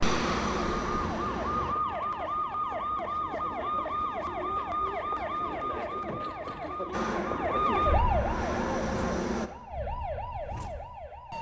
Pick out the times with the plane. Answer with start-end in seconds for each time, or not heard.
0.0-1.8, 6.9-9.5.